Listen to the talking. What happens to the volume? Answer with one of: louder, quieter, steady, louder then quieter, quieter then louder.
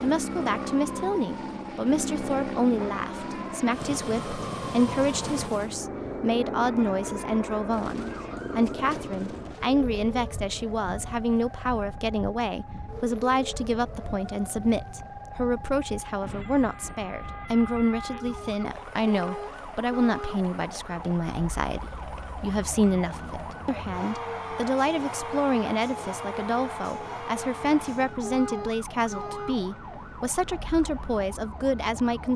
steady.